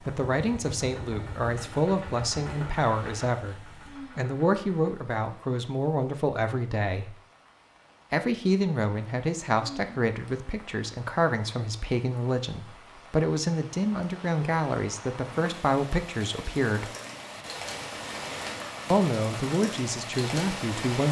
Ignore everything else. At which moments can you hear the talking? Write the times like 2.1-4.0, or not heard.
0.0-7.2, 8.1-16.9, 18.9-21.0.